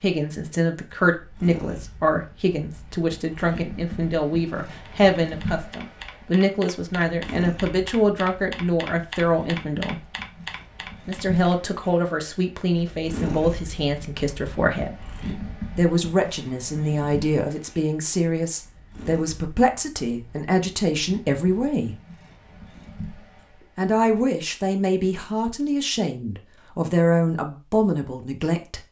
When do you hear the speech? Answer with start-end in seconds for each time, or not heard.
0.0-10.0, 11.1-15.1, 15.8-21.9, 23.8-28.8.